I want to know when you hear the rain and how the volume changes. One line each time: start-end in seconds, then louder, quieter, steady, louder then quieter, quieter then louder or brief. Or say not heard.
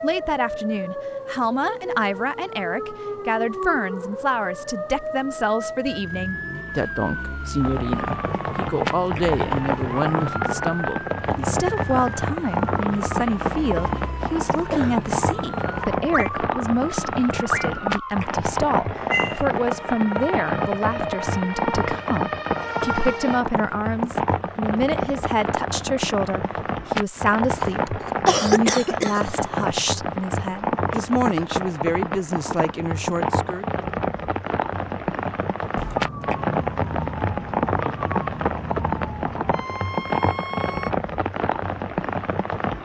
7.6-42.8 steady.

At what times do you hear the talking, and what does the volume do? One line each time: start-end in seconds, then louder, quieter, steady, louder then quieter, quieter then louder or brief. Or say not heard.
0.0-33.6 steady.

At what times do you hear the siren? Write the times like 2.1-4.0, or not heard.
0.0-23.4, 35.8-40.9.